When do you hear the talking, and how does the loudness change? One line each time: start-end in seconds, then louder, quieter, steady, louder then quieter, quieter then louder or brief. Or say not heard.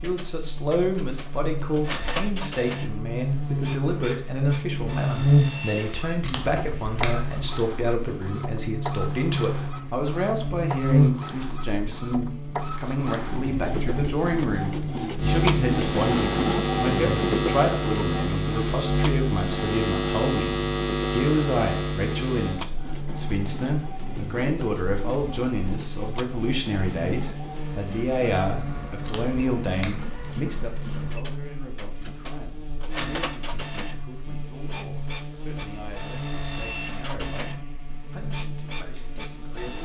0.0-39.8 quieter.